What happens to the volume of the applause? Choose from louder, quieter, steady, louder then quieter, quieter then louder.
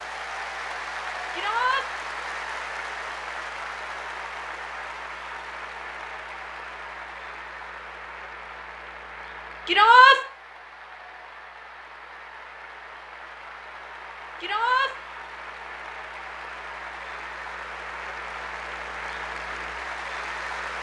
quieter then louder.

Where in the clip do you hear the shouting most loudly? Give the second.
10 s.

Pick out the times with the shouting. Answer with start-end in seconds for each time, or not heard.
1.3-1.9, 9.7-10.2, 14.4-14.9.